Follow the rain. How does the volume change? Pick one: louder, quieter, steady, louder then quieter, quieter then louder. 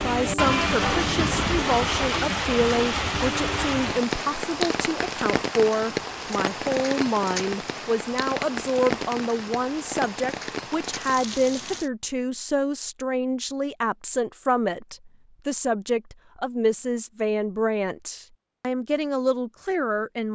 quieter.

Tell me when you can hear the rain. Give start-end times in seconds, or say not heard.
0.0-11.9.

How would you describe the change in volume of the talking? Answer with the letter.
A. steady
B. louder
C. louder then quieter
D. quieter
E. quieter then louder
A.